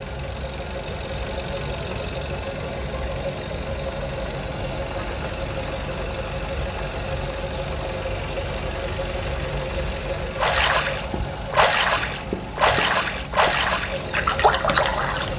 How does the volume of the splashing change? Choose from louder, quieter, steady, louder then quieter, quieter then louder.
steady.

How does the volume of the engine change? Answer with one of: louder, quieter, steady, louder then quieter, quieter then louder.
steady.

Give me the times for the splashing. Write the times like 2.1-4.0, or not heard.
10.3-15.3.